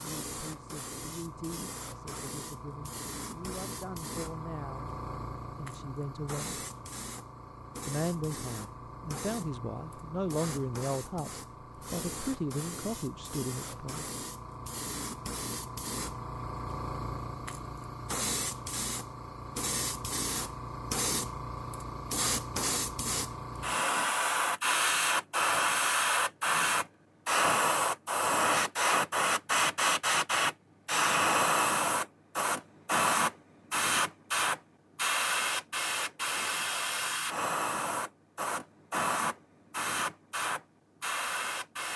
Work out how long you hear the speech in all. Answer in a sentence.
The speech can be heard for 12 seconds in total.